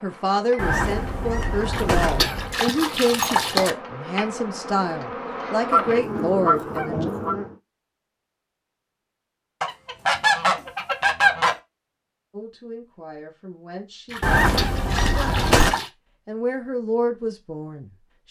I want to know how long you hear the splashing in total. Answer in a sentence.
You can hear the splashing for 4 seconds altogether.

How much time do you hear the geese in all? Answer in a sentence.
The geese can be heard for 7 seconds in total.